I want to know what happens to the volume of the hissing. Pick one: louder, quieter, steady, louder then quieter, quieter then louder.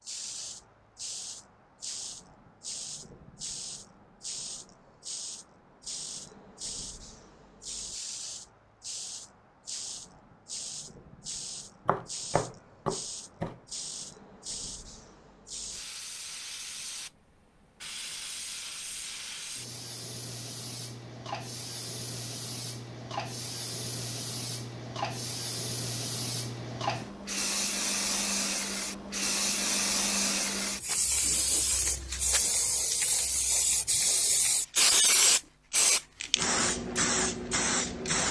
louder.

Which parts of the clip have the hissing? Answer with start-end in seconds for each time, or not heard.
0.0-38.2.